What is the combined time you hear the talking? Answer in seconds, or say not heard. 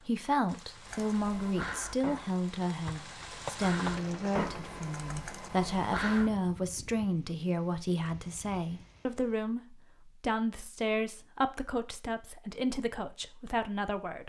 14 s.